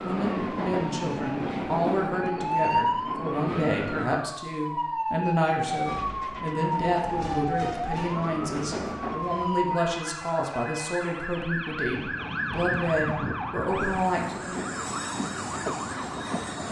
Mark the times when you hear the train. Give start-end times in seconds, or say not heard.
0.0-4.1, 5.7-9.4, 11.8-16.6.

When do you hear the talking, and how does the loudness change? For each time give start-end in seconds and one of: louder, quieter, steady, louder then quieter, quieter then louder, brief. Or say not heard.
0.0-14.8 steady.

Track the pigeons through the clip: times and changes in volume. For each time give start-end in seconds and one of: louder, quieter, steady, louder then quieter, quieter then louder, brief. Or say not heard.
not heard.